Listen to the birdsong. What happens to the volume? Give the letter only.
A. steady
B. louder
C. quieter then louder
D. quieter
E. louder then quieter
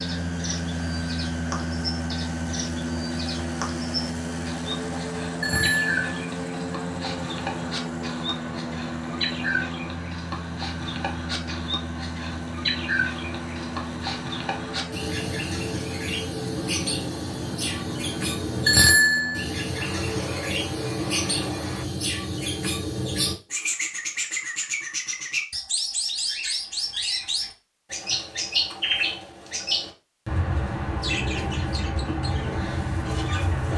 B.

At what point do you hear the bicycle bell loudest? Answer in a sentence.
The volume of the bicycle bell peaks at 19 seconds.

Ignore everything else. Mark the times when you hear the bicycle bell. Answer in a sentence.
You can hear the bicycle bell from 5.4 to 6.0 s and from 18.6 to 19.4 s.